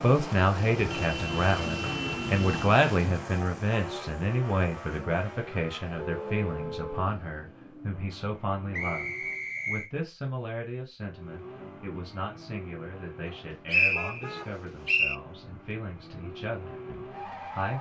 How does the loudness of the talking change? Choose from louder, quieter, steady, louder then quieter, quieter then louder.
quieter.